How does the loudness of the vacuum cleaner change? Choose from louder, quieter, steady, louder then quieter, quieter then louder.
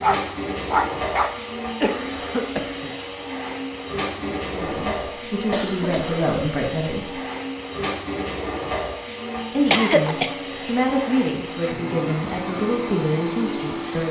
steady.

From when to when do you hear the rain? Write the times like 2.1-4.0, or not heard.
not heard.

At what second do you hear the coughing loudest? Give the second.
10 s.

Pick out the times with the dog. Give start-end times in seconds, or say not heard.
0.0-1.4.